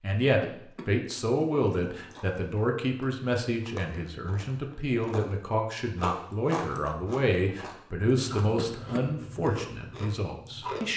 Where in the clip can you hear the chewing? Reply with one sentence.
You can hear the chewing from 1.7 to 10.9 s.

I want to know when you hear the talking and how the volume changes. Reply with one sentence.
You can hear the talking from 0.0 to 10.9 s, at a steady volume.